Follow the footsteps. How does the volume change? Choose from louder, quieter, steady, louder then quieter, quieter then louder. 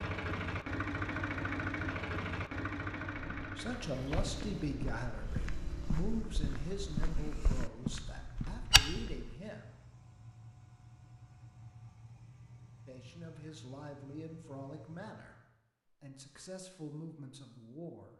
louder.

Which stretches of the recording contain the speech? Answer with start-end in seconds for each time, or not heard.
3.5-9.7, 12.8-18.1.